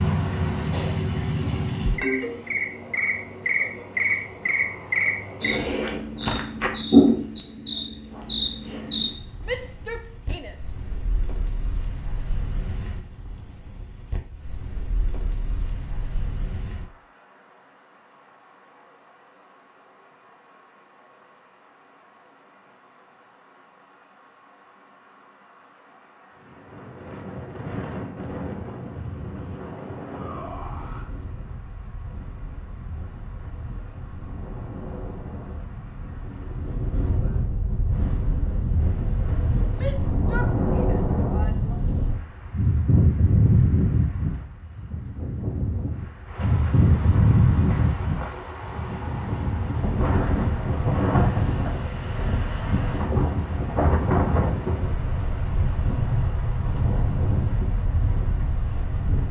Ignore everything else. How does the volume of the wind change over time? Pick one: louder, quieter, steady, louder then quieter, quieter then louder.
louder.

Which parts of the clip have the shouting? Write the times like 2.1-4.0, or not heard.
9.4-10.8, 30.0-31.1, 39.7-41.8.